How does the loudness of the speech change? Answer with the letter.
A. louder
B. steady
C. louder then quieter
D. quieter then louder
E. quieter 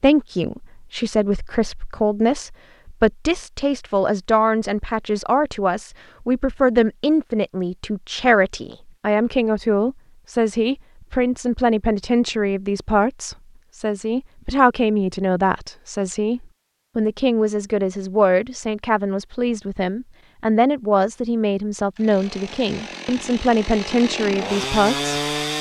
B.